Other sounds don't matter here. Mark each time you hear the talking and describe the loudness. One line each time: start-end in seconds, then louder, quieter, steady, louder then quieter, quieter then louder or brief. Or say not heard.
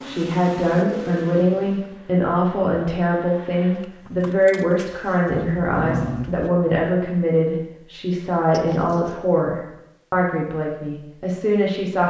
0.1-12.0 steady.